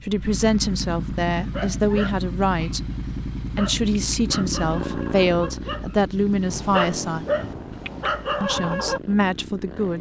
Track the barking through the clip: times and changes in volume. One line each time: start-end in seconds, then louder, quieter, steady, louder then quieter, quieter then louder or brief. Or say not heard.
1.4-9.0 louder.